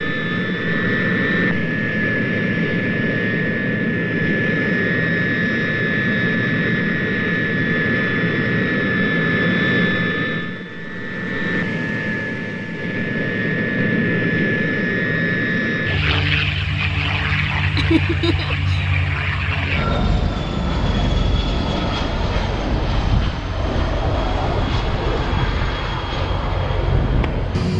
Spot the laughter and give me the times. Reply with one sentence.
The laughter can be heard from 17.8 to 18.9 s.